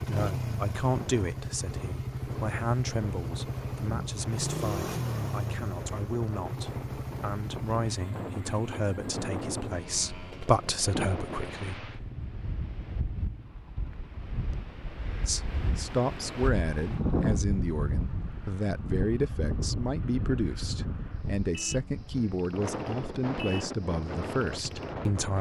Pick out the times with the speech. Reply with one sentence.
The speech can be heard from 0.0 to 11.9 s and from 15.2 to 25.3 s.